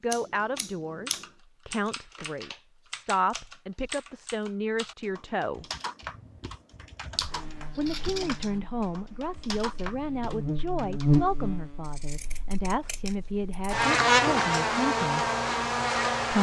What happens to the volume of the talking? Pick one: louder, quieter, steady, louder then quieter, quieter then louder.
steady.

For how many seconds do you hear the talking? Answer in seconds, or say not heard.
13 s.